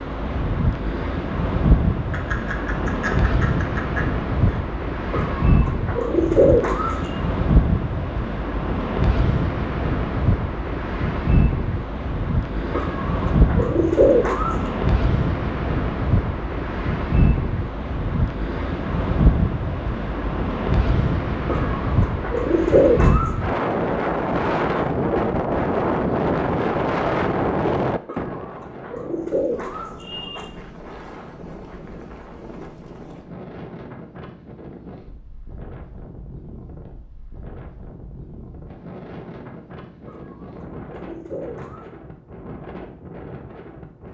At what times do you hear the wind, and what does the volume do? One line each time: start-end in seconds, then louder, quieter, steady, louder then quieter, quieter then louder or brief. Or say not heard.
0.0-44.0 quieter.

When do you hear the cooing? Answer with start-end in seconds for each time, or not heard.
5.1-7.0, 12.7-14.6, 21.4-23.3, 28.1-30.4, 40.0-41.9.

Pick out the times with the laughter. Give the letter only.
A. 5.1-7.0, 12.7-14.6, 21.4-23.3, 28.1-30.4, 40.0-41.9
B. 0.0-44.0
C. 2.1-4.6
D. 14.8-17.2
C.